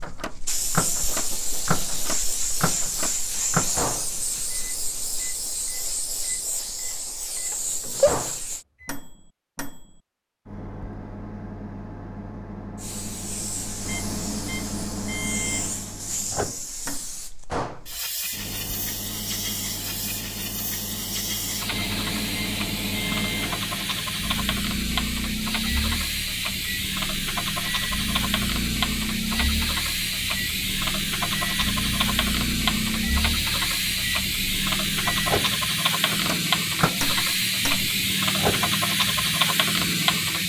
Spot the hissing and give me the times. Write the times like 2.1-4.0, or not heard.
0.0-8.7, 12.8-40.4.